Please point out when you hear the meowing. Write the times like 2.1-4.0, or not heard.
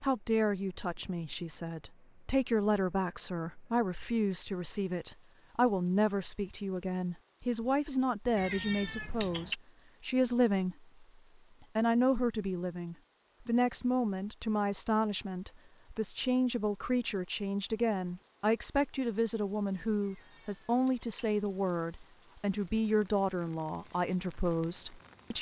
8.3-9.6, 20.0-21.1.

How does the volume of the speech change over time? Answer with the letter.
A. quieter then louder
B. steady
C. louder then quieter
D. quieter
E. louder
B.